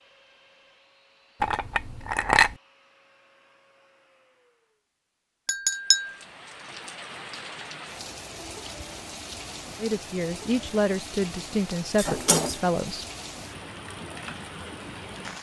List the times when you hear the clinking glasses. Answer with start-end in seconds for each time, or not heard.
1.4-2.5, 5.5-6.2, 11.9-12.6.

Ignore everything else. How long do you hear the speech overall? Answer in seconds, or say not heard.
3 s.